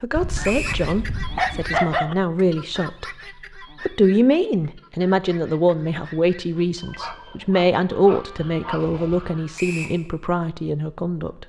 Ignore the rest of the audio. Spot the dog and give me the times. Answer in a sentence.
The dog can be heard from 0.1 to 2.1 s and from 6.9 to 9.4 s.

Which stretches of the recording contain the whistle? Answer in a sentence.
The whistle can be heard from 0.4 to 0.8 s and from 9.6 to 10.0 s.